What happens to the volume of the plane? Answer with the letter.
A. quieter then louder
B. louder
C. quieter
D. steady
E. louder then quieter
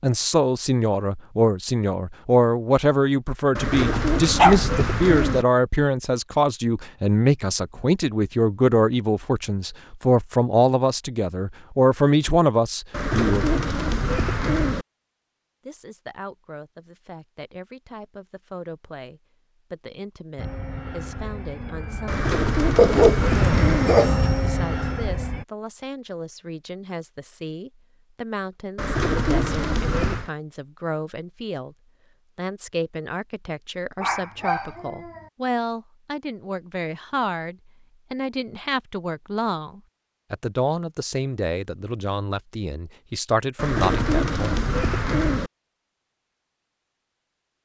B.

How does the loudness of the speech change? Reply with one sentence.
The loudness of the speech goes down, then up.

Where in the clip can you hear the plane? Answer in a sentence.
You can hear the plane from 20.4 to 25.4 s.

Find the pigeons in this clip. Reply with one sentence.
The pigeons can be heard from 3.5 to 5.5 s, from 12.9 to 14.8 s, from 22.1 to 23.9 s, from 28.8 to 30.3 s and from 43.5 to 45.5 s.